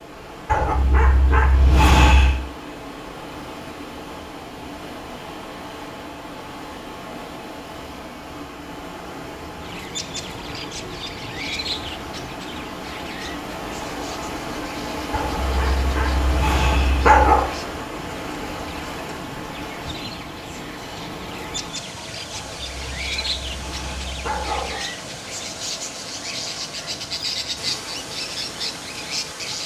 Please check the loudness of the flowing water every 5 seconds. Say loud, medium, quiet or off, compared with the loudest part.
medium, medium, loud, loud, medium, medium.